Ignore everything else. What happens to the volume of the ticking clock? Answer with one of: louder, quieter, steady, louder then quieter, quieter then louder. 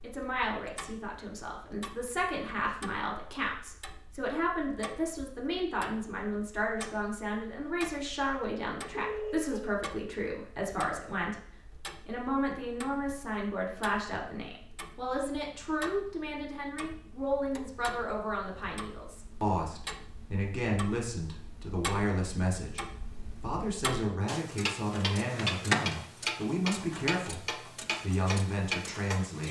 louder.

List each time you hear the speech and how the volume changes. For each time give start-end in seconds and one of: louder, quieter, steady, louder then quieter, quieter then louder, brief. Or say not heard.
0.0-11.4 steady
12.1-29.4 steady.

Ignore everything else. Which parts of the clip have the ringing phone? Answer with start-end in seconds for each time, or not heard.
8.9-9.7.